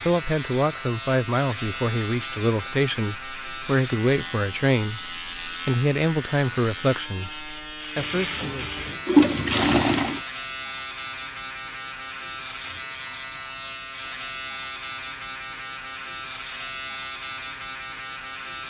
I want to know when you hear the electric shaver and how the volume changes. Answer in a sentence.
You can hear the electric shaver from 0.0 to 18.6 s, at a steady volume.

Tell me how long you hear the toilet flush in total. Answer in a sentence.
The toilet flush can be heard for 2 seconds in total.